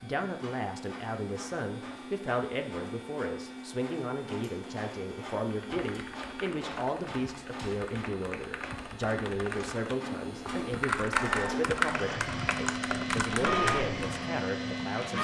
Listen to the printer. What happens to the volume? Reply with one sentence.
The volume of the printer goes up.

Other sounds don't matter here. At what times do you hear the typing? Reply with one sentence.
You can hear the typing from 5.5 to 14.2 s.